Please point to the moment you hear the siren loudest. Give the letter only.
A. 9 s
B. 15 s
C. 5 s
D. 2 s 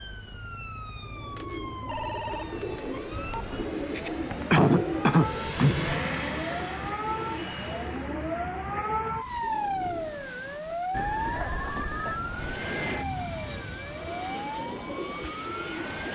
A.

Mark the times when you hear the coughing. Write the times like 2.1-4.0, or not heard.
4.0-5.9, 11.3-12.2.